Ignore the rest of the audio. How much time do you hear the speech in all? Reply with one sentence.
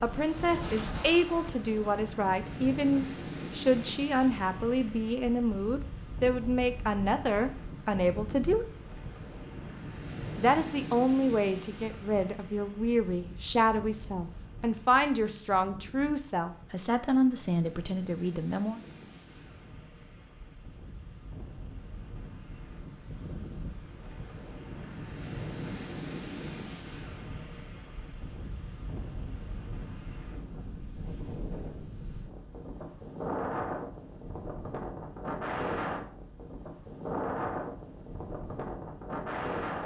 You can hear the speech for 17 seconds altogether.